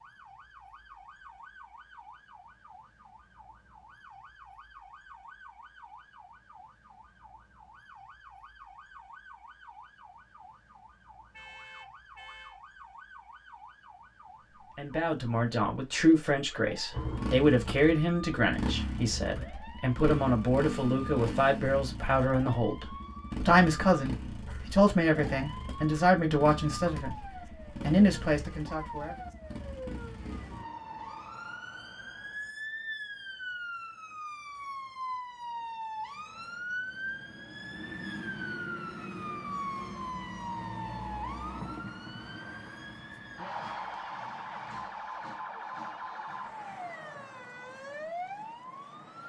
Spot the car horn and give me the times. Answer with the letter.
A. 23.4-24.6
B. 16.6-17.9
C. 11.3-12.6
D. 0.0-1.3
C.